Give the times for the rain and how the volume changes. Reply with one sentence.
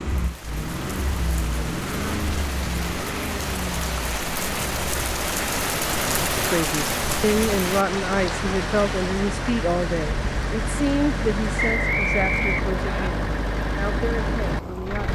You can hear the rain from 0.1 to 15.1 s, getting louder then quieter.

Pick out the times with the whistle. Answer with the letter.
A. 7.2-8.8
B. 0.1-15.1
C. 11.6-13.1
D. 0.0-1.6
C.